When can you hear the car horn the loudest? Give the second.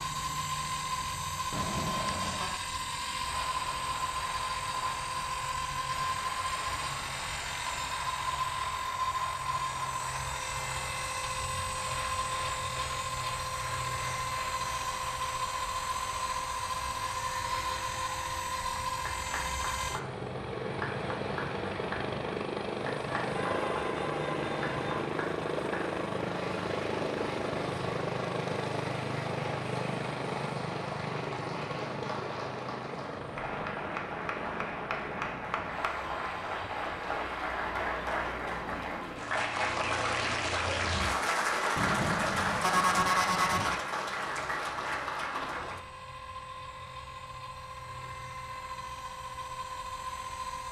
43 s.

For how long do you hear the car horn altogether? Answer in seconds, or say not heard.
5 s.